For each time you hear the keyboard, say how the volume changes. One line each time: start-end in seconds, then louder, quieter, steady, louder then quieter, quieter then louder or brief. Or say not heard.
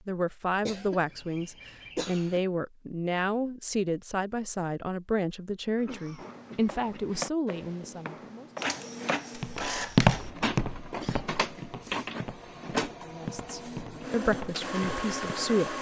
not heard.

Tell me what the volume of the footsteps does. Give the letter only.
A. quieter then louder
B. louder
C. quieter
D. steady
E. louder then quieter
E.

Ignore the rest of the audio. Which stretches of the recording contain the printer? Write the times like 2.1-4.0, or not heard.
8.6-15.7.